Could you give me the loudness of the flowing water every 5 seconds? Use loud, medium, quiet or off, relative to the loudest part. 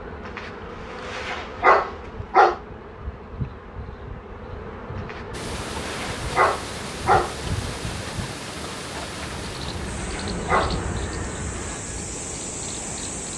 off, loud, loud.